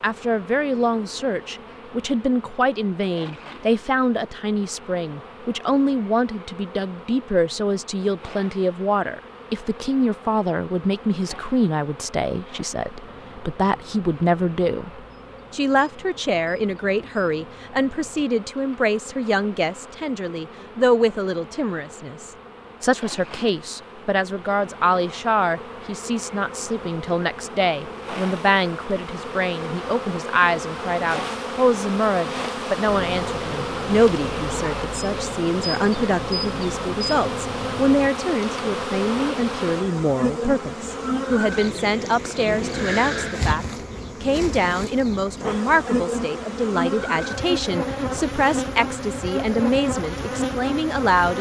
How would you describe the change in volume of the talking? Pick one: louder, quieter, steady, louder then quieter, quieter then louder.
steady.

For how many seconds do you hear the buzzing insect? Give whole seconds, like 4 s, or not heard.
51 s.